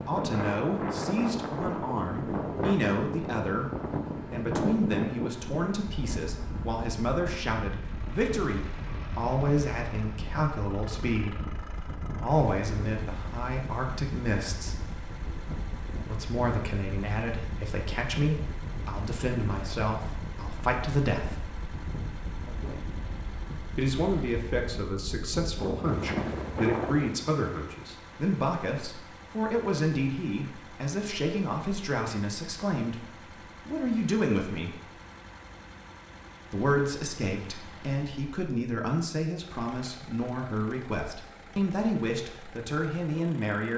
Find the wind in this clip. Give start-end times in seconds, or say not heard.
0.0-27.2.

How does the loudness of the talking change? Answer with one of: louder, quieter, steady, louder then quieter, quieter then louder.
steady.